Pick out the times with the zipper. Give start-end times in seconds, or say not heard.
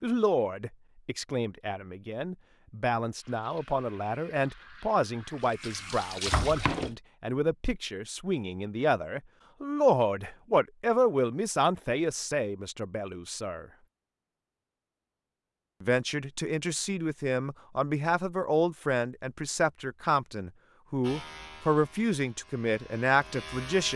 not heard.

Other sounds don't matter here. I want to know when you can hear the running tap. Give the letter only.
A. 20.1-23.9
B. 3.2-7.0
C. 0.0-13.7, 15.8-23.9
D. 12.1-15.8
B.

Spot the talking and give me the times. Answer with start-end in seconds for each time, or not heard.
0.0-13.7, 15.8-23.9.